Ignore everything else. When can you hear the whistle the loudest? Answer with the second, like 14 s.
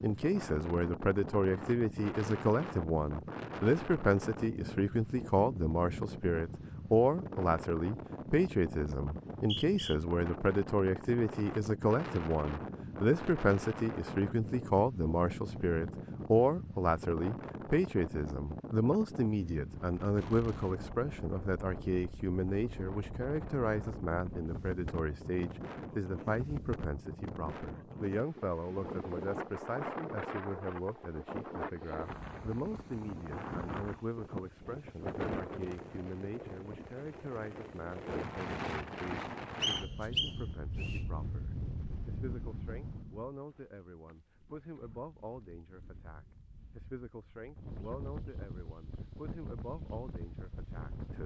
40 s.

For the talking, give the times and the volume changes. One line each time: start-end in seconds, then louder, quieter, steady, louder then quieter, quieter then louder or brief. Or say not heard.
0.0-51.2 quieter.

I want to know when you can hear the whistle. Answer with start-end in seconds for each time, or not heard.
9.2-10.0, 39.6-41.0.